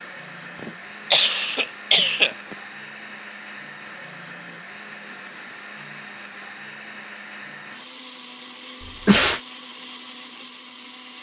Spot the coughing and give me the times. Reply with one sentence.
You can hear the coughing from 0.6 to 2.5 s and from 8.8 to 9.4 s.